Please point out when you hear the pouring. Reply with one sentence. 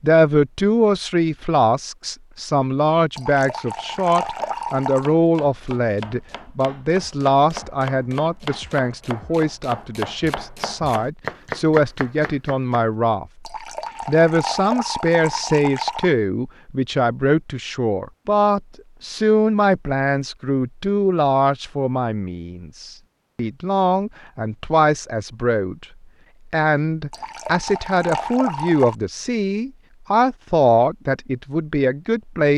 The pouring can be heard from 3.1 to 5.1 s, from 13.4 to 16.1 s and from 27.1 to 28.9 s.